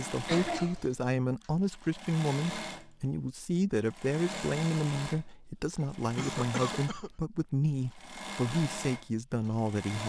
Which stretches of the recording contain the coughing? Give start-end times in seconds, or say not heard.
0.2-0.9, 6.2-7.1.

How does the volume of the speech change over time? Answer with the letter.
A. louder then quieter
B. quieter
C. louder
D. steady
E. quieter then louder
D.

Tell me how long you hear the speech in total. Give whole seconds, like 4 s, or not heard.
10 s.